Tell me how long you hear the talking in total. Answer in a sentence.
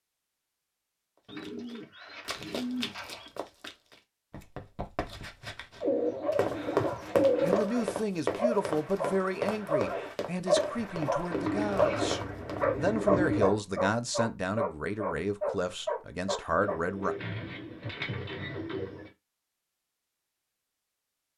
You can hear the talking for 10 seconds altogether.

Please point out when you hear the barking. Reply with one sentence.
You can hear the barking from 6.2 to 16.8 s.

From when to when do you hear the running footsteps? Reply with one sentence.
You can hear the running footsteps from 1.4 to 12.7 s.